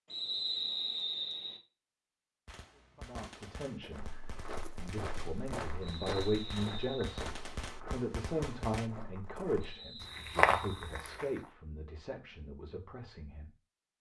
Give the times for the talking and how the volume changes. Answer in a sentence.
You can hear the talking from 3.0 to 13.5 s, getting louder then quieter.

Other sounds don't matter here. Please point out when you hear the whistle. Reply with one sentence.
The whistle can be heard from 0.1 to 1.6 s, from 5.8 to 7.0 s and from 9.6 to 11.1 s.